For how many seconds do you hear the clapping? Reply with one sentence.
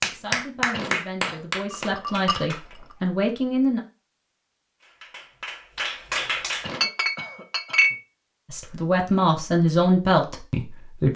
You can hear the clapping for 5 seconds altogether.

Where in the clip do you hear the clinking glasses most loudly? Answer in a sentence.
The volume of the clinking glasses peaks at 8 seconds.